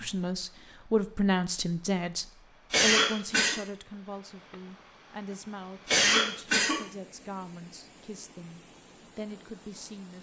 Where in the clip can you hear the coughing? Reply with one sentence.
The coughing can be heard from 2.7 to 3.5 s and from 5.8 to 6.8 s.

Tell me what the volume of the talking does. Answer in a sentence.
The loudness of the talking goes down.